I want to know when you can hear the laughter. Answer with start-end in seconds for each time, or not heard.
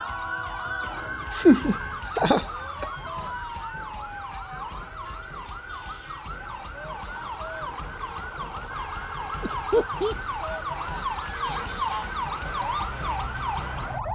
1.3-2.9, 9.4-10.2.